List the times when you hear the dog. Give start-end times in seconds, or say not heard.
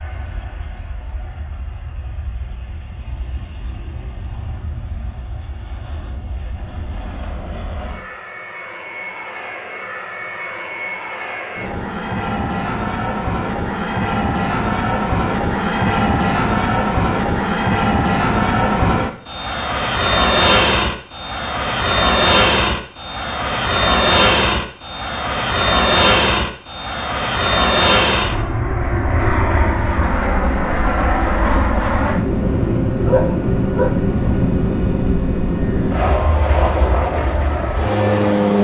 33.0-34.0.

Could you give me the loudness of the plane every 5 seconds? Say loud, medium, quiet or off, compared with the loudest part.
quiet, quiet, medium, loud, loud, loud, loud, loud.